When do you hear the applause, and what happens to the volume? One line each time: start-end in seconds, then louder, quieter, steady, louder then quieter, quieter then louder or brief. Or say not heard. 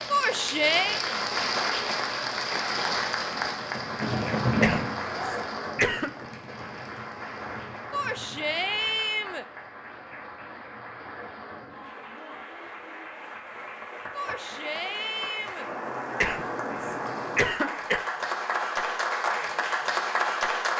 0.0-20.7 quieter then louder.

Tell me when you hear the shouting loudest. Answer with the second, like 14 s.
1 s.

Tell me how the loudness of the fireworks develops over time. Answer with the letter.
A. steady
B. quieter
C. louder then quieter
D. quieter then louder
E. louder
B.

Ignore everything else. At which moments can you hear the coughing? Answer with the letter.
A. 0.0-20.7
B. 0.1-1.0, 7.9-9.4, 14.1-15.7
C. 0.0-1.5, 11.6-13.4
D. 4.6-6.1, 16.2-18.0
D.